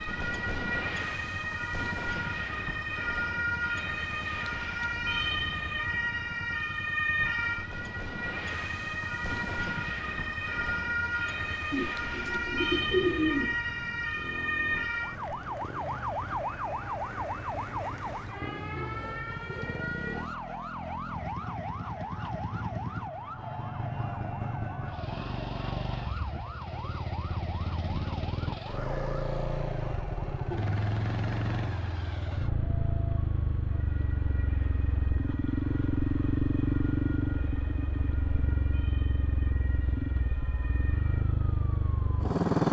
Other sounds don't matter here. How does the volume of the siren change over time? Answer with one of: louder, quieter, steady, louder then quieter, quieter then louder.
quieter.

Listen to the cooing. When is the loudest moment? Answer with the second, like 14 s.
13 s.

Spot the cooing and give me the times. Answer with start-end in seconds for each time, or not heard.
11.7-13.6.